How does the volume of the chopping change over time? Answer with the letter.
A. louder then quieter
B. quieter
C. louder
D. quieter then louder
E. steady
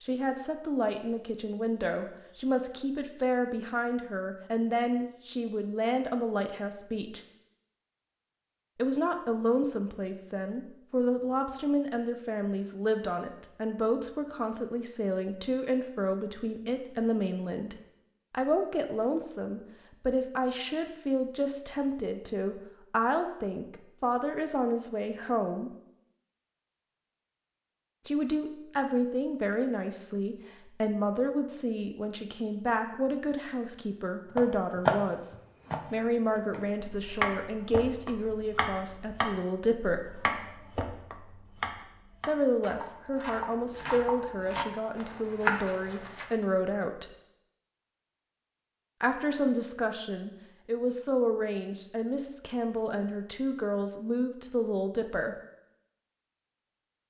D.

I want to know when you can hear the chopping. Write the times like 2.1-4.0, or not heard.
34.4-46.5.